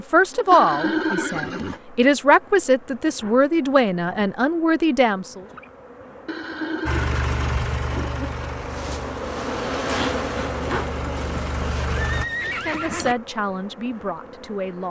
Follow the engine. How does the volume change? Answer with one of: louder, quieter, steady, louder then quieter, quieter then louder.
quieter then louder.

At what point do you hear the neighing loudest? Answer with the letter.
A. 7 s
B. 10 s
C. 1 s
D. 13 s
C.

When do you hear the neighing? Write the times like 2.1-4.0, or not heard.
0.5-1.8, 6.2-8.1, 11.2-13.2.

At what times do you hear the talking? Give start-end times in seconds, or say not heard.
0.0-5.5, 12.4-14.8.